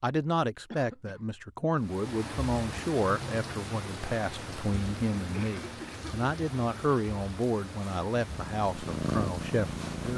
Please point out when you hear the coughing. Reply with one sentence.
You can hear the coughing from 0.7 to 1.2 s and from 5.3 to 6.2 s.